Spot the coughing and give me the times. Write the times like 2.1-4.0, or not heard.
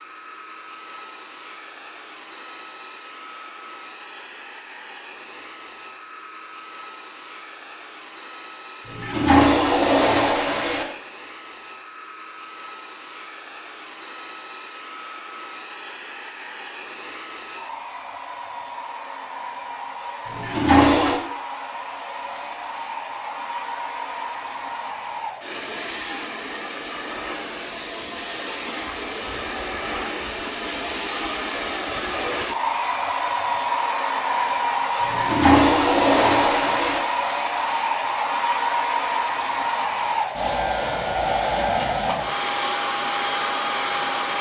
not heard.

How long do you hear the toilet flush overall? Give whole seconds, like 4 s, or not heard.
5 s.